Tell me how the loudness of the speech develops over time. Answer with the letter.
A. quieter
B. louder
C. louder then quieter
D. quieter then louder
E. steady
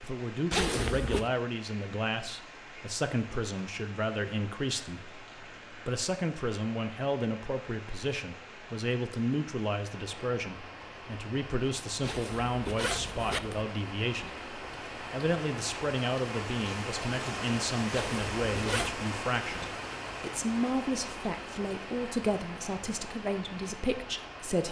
E.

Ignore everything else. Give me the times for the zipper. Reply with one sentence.
The zipper can be heard from 0.5 to 1.3 s, from 12.0 to 13.7 s and from 17.9 to 18.9 s.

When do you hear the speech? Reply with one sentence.
The speech can be heard from 0.0 to 24.6 s.